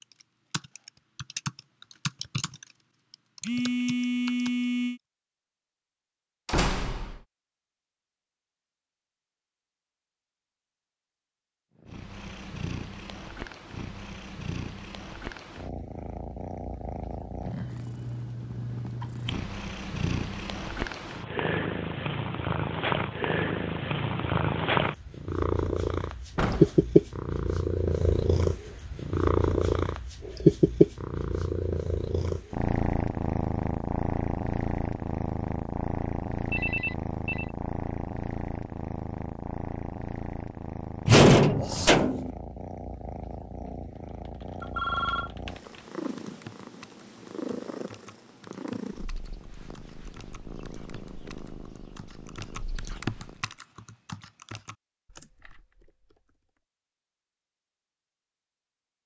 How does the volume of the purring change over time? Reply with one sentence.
The volume of the purring goes up, then down.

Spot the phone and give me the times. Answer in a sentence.
You can hear the phone from 3.4 to 5.0 s, from 36.5 to 37.5 s and from 44.6 to 45.3 s.